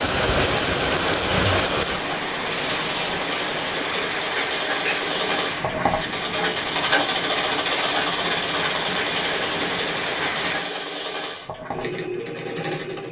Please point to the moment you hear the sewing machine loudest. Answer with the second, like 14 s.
7 s.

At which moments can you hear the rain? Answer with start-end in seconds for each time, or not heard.
0.0-10.8.